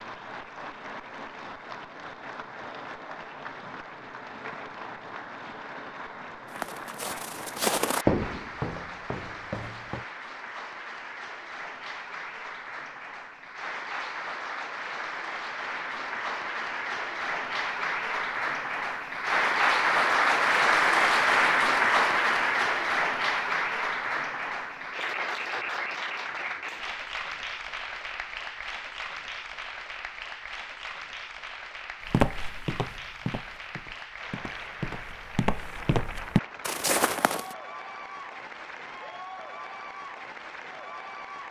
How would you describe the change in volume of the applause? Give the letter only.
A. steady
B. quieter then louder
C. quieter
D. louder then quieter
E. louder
D.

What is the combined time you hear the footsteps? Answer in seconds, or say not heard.
9 s.